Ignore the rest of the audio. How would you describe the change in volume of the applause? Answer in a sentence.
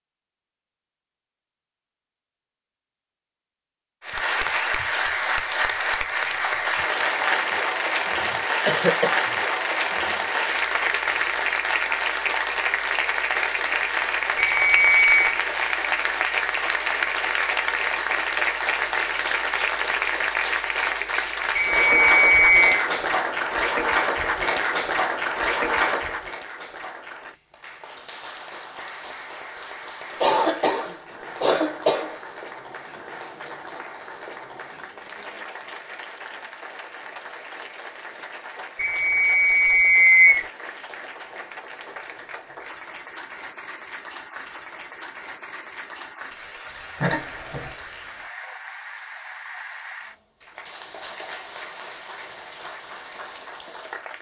The volume of the applause goes down.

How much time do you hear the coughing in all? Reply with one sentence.
The coughing can be heard for 4 seconds in total.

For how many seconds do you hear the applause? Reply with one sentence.
You can hear the applause for 50 seconds altogether.